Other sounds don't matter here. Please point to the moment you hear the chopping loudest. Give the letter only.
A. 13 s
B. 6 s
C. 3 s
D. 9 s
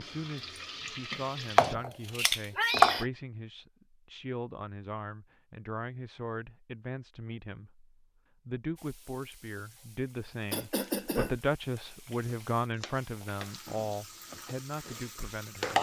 C.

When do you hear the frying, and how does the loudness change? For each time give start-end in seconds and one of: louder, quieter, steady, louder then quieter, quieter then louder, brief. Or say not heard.
0.0-1.8 brief
8.8-15.7 louder.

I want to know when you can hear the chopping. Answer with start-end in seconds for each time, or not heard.
1.1-3.0, 11.8-13.7.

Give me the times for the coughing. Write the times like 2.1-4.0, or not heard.
2.5-3.1, 10.5-11.3.